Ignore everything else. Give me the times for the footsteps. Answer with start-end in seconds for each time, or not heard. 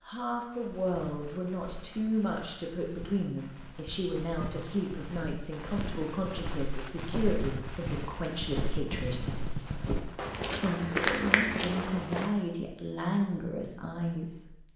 0.7-12.3.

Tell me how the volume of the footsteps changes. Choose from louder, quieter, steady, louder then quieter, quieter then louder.
louder.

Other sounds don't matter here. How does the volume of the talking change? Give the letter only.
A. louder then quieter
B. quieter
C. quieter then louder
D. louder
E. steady
E.